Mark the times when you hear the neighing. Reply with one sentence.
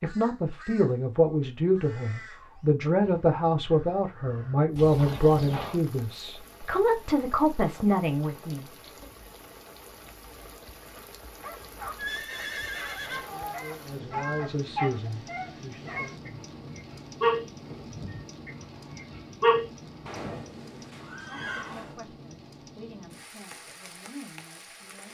You can hear the neighing from 4.8 to 5.8 s, from 11.9 to 13.6 s and from 20.1 to 22.0 s.